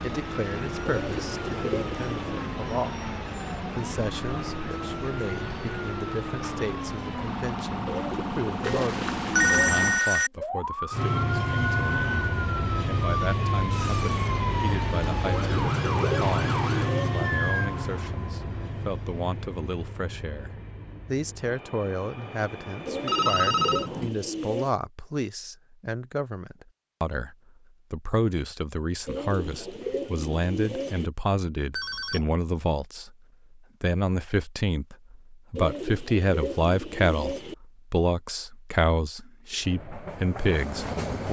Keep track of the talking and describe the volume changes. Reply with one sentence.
The volume of the talking goes up.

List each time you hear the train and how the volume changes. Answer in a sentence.
You can hear the train from 10.9 to 24.1 s, getting quieter; and briefly from 39.6 to 41.2 s.